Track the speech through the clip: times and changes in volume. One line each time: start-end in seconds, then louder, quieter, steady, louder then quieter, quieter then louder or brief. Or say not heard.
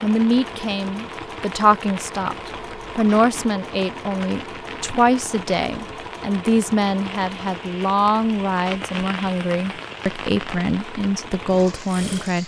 0.0-12.4 steady.